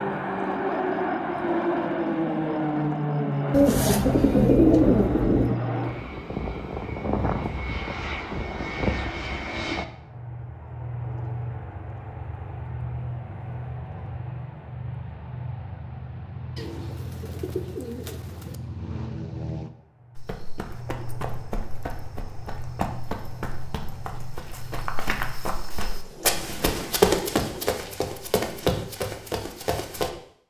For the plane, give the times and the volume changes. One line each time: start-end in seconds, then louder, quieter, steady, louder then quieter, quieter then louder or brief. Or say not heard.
0.0-25.4 quieter.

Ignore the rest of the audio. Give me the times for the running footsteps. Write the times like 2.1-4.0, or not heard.
20.1-30.1.